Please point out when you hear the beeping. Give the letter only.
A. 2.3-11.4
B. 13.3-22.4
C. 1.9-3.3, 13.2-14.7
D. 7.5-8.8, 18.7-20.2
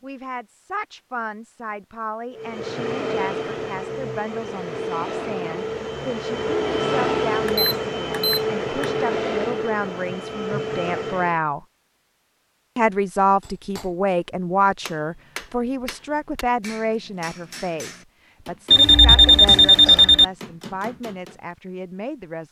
D.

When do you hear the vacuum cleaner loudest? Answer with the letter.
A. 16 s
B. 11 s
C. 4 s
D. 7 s
D.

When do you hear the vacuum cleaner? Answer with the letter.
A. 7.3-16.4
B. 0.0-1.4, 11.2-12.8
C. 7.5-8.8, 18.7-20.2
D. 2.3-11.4
D.